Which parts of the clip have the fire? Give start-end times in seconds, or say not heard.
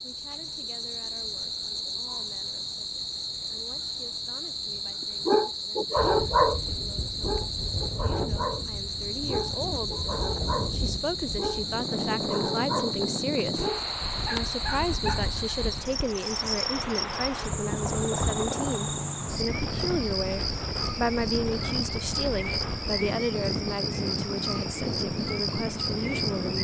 not heard.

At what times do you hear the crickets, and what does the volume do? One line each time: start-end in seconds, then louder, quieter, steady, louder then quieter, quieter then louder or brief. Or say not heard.
0.0-26.5 steady.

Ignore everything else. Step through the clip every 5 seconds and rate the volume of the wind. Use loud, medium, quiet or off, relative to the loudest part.
off, medium, loud, loud, loud, loud.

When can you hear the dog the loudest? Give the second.
6 s.